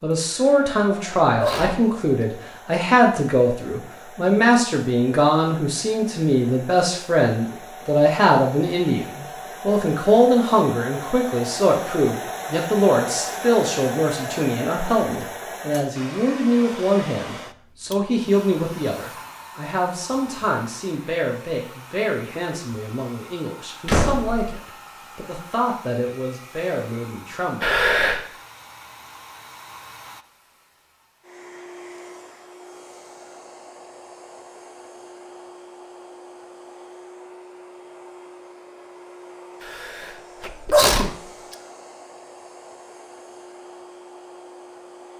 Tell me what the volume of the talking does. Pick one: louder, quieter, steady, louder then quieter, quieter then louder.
quieter.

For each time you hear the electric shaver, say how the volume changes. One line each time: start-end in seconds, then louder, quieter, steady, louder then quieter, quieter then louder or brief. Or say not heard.
not heard.